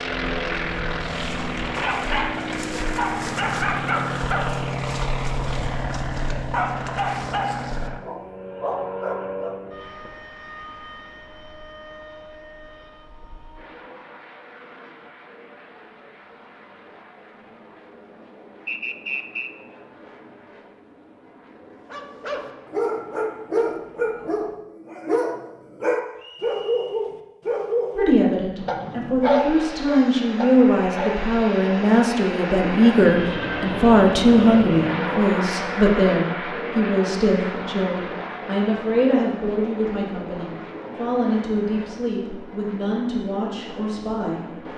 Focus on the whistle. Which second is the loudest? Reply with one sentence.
The loudest moment of the whistle is at 19 seconds.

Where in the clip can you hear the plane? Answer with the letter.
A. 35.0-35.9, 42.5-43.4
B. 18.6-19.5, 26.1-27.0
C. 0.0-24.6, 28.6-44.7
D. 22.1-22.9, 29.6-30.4
C.